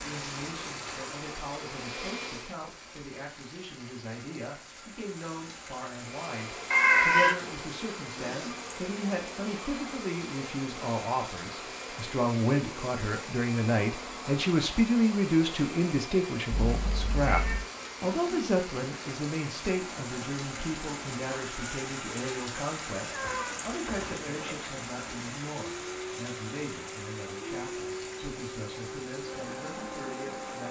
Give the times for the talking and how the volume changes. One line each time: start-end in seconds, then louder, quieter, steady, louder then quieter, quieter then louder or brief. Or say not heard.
0.0-30.6 louder then quieter.